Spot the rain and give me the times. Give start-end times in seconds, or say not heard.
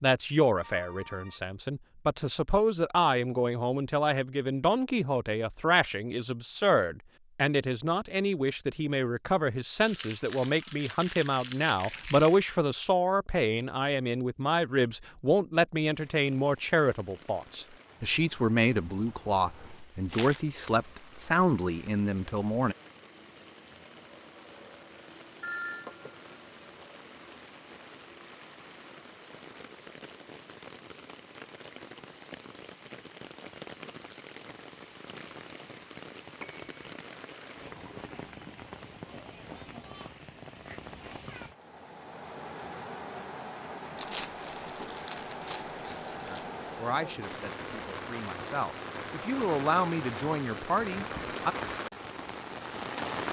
15.9-53.2.